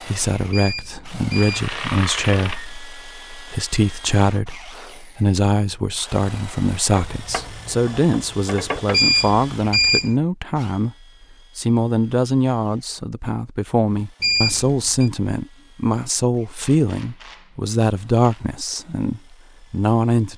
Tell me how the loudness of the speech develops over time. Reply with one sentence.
The loudness of the speech stays about the same.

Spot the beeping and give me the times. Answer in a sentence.
The beeping can be heard from 0.5 to 1.6 s, from 8.9 to 10.2 s and from 14.2 to 15.1 s.